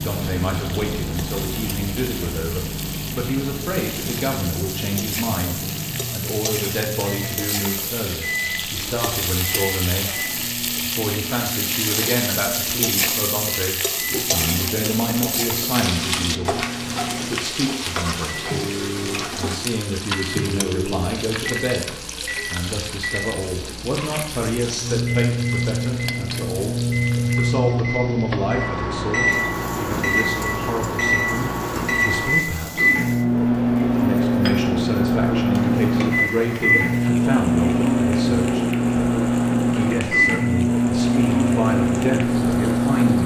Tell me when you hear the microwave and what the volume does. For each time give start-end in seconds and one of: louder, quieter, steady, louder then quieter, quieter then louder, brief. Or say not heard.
0.0-43.2 louder.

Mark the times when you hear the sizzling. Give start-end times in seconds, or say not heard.
0.0-43.2.